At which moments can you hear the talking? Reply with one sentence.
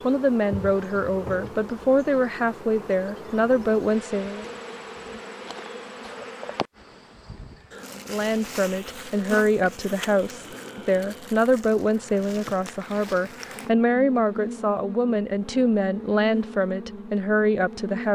The talking can be heard from 0.0 to 4.5 s and from 8.0 to 18.1 s.